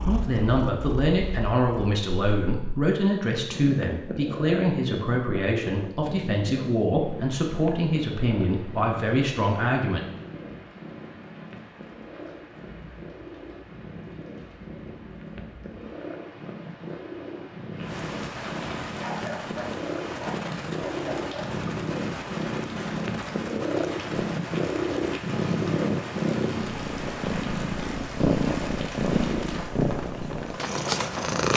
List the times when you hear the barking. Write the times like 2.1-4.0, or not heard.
18.9-21.6.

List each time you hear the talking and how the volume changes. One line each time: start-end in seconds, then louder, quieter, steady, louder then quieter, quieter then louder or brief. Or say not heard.
0.0-10.1 steady.